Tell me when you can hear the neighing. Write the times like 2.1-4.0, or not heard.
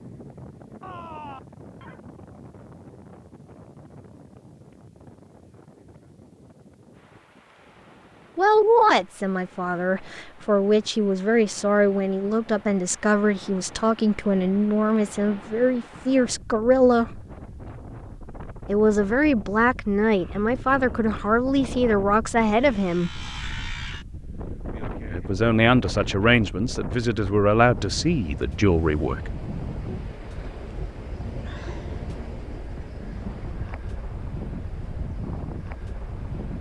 0.8-2.0.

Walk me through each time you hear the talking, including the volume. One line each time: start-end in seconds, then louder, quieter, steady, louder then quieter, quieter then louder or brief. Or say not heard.
8.3-17.2 steady
18.6-23.2 steady
25.1-29.3 steady.